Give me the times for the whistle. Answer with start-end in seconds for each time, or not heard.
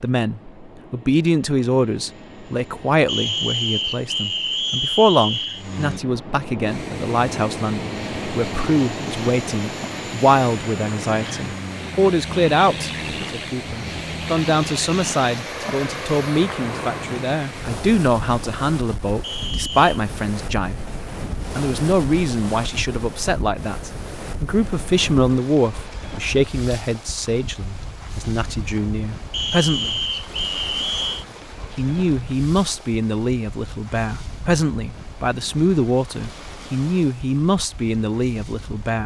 3.0-5.7, 19.2-19.9, 29.3-31.2.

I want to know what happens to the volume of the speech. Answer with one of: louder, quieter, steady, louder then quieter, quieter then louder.
steady.